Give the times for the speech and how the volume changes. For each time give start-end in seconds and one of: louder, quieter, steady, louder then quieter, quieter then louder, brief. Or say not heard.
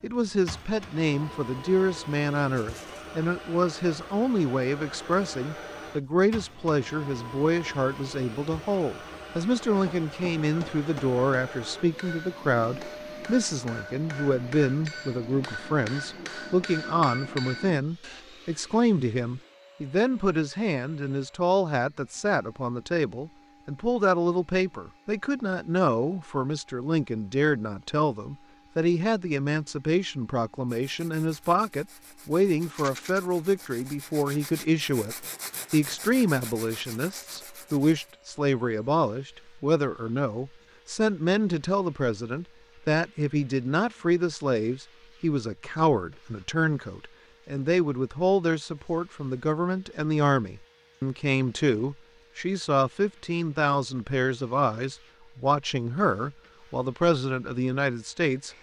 0.0-58.5 steady.